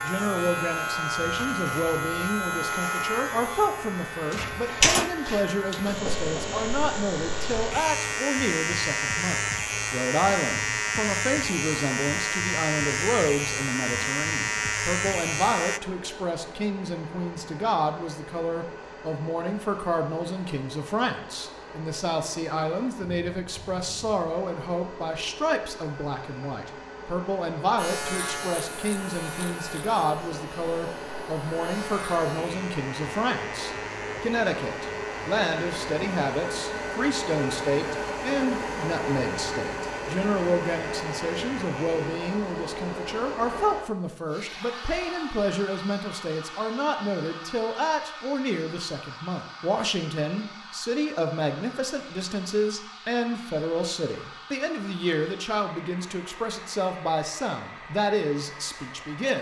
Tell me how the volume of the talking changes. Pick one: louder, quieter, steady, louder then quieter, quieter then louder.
steady.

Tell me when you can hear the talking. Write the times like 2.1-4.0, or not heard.
0.0-59.3.